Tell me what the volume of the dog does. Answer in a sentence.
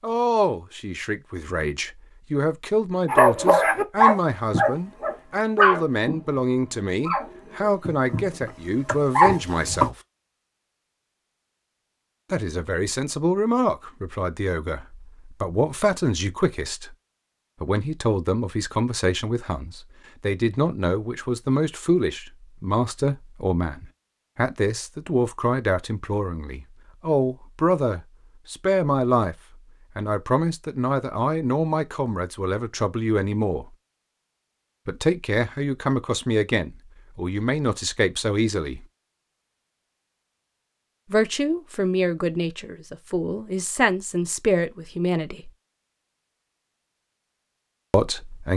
The loudness of the dog goes down, then up.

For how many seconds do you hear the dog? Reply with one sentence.
The dog can be heard for 7 seconds in total.